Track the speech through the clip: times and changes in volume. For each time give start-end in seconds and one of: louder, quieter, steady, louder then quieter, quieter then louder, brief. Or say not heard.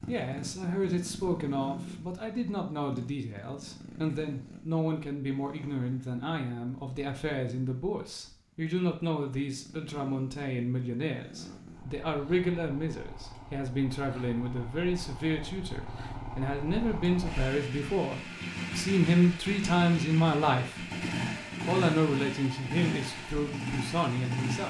0.1-20.9 louder
21.6-24.6 brief.